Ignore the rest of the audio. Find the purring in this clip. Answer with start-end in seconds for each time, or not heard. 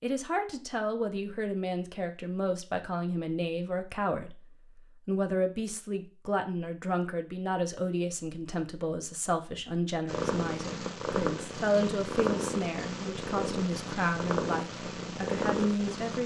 10.1-16.2.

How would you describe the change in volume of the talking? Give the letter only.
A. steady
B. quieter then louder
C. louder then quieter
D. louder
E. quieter
A.